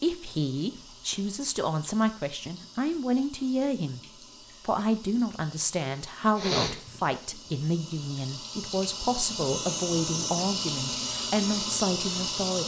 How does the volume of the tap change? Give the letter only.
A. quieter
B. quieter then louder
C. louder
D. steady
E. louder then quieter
C.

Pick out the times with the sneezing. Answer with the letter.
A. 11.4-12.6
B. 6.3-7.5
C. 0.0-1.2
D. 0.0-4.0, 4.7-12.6
B.